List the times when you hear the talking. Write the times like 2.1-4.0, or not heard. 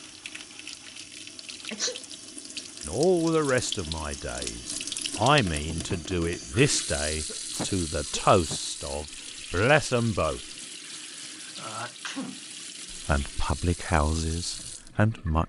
2.9-10.4, 12.9-15.4.